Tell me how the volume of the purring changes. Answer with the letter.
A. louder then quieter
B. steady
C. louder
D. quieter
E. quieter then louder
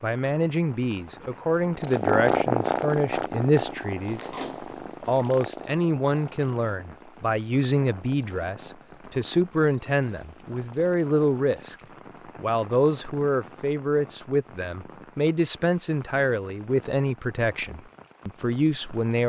D.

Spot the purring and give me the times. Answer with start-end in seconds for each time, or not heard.
1.8-11.6.